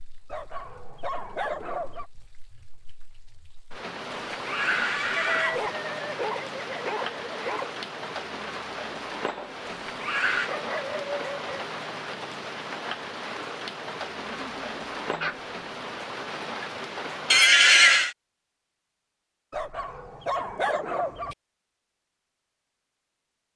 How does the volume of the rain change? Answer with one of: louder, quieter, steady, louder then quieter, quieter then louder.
louder.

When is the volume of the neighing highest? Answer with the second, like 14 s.
18 s.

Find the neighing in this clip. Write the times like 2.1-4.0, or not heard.
4.1-5.7, 9.7-10.5, 17.3-18.1.